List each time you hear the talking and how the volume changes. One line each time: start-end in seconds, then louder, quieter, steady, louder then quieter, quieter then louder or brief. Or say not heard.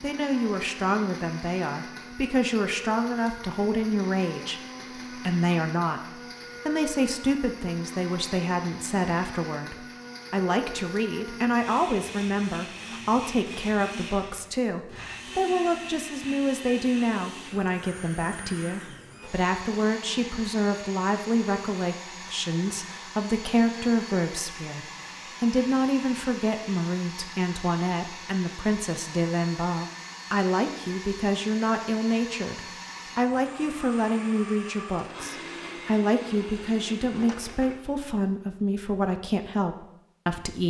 0.0-40.6 steady.